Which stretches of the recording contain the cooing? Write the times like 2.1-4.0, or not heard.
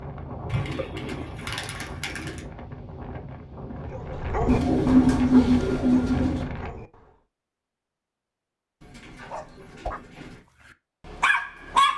0.5-2.5, 4.5-6.5, 8.8-10.4.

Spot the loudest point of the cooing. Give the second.
5 s.